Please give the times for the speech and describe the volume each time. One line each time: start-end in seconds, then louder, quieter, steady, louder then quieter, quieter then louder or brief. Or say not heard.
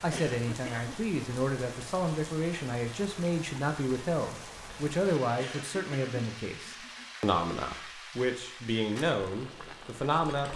0.0-10.5 steady.